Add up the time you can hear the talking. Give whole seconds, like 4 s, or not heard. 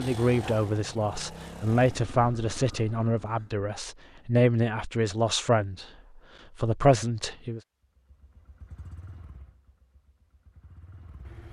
7 s.